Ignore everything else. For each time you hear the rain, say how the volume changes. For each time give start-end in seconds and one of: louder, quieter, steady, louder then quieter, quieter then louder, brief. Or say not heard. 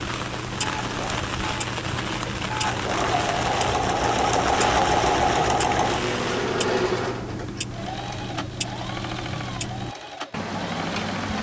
0.0-6.6 steady.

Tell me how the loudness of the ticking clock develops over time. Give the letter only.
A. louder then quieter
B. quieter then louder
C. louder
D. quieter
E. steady
E.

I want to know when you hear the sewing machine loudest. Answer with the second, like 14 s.
5 s.